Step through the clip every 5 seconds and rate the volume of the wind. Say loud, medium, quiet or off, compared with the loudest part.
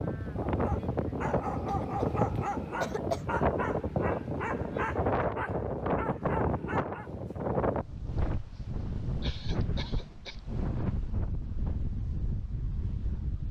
loud, loud, medium.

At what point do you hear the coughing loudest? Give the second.
3 s.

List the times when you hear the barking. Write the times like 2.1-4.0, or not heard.
0.5-7.1.